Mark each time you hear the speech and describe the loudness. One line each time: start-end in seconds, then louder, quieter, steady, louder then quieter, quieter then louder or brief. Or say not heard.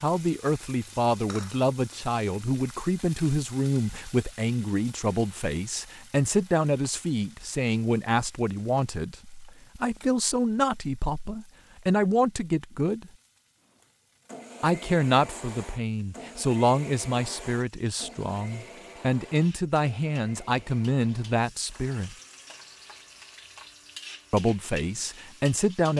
0.0-13.1 steady
14.6-22.1 quieter then louder
24.3-25.9 brief.